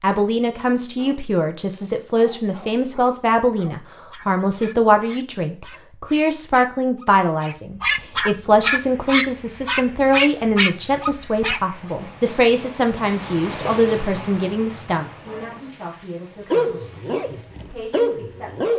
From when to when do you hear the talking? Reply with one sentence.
The talking can be heard from 0.0 to 18.7 s.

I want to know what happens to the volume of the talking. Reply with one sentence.
The volume of the talking goes down.